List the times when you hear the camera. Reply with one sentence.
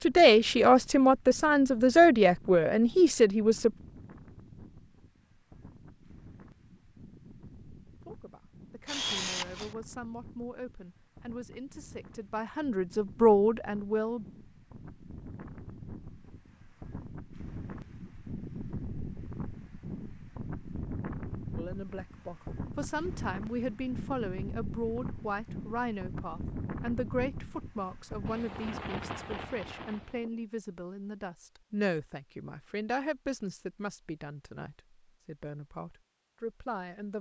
The camera can be heard from 8.8 to 9.8 s.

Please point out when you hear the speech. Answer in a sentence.
You can hear the speech from 0.0 to 3.7 s, from 8.1 to 14.2 s and from 21.6 to 37.1 s.